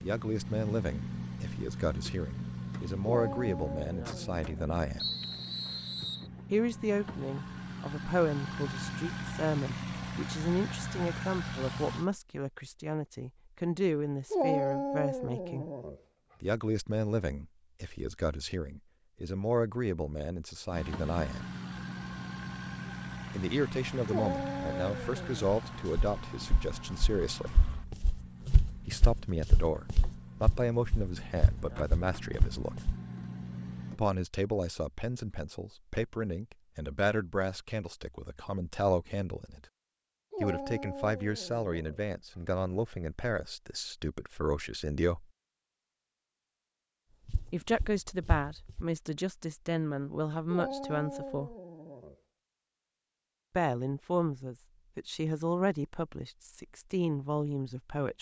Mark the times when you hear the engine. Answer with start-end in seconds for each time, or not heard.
0.0-12.1, 20.7-34.0.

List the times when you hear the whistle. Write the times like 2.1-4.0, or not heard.
5.0-6.3.